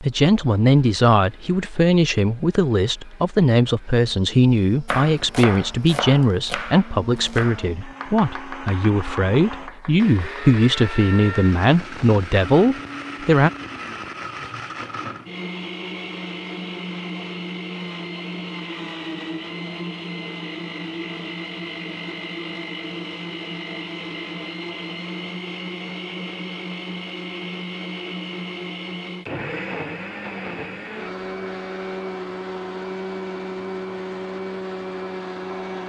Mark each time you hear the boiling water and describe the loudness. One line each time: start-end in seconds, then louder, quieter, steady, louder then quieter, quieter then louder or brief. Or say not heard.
not heard.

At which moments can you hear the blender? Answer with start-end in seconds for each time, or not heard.
0.0-35.8.